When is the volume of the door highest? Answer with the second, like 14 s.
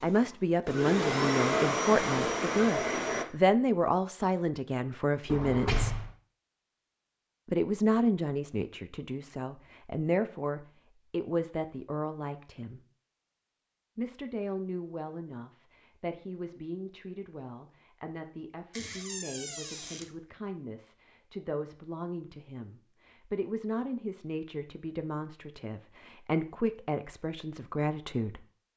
6 s.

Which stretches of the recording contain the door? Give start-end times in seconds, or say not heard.
5.2-6.1, 18.7-20.1.